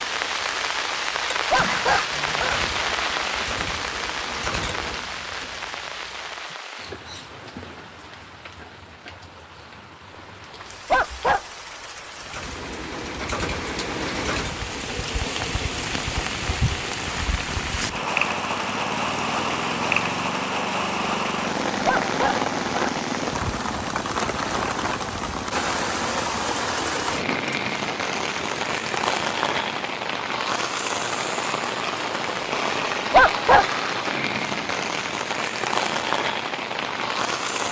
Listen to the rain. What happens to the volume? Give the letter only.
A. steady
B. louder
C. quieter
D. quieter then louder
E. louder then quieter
D.